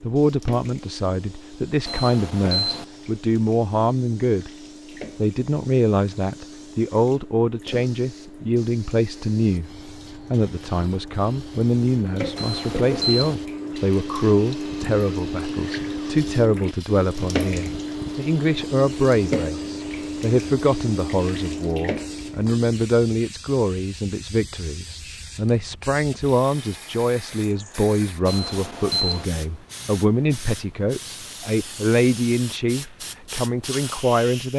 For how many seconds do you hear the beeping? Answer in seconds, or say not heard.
3 s.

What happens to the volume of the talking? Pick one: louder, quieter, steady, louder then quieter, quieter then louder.
steady.